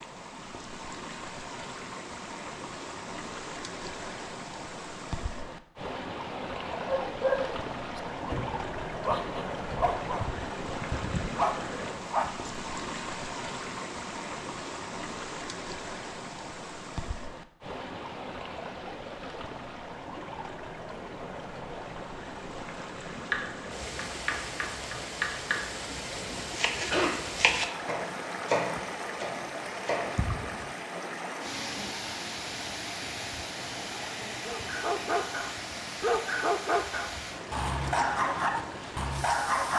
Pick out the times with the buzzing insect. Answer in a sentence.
The buzzing insect can't be heard in this clip.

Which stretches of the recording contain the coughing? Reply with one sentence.
You can hear the coughing from 26.2 to 27.1 s.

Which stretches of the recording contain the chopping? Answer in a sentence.
The chopping can be heard from 23.1 to 30.1 s.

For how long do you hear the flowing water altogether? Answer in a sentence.
You can hear the flowing water for 40 seconds altogether.